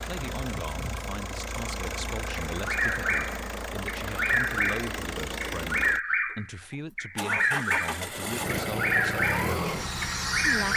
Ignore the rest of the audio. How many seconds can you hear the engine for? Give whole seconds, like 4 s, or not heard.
11 s.